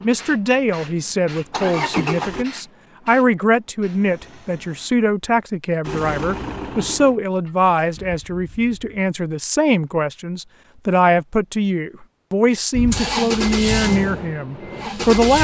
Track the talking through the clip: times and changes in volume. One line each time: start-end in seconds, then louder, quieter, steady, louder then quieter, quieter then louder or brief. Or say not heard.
0.0-15.3 steady.